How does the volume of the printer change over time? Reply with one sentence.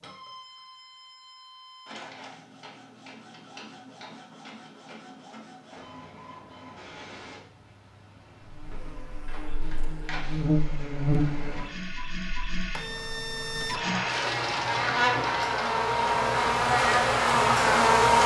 The loudness of the printer goes up.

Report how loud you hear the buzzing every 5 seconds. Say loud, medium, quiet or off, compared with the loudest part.
off, quiet, medium, loud.